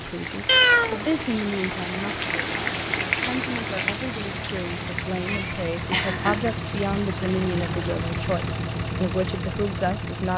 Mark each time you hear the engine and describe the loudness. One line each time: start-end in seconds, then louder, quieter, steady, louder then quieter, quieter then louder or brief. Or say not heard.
0.0-10.3 louder.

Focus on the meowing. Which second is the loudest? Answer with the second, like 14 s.
1 s.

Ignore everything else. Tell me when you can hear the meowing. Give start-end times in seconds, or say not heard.
0.5-1.2, 5.2-6.5.